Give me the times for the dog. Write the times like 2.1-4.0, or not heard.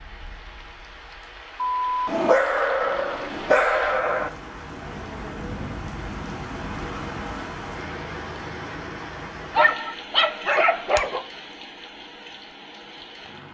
1.9-4.3, 9.5-11.2.